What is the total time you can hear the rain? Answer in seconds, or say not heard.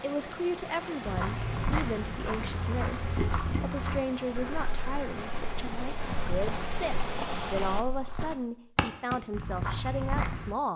8 s.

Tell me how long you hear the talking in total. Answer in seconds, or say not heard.
11 s.